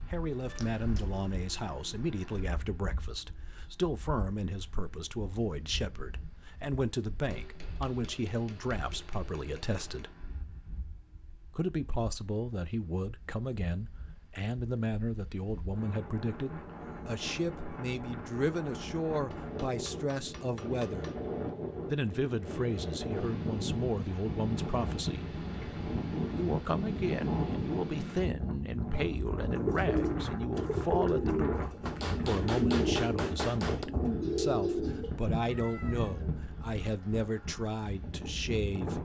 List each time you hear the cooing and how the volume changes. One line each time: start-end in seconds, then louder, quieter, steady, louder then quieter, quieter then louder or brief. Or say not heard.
29.4-35.0 steady.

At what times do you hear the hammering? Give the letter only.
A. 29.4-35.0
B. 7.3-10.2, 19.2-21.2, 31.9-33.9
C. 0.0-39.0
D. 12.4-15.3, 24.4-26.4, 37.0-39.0
B.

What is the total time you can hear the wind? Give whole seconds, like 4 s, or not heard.
39 s.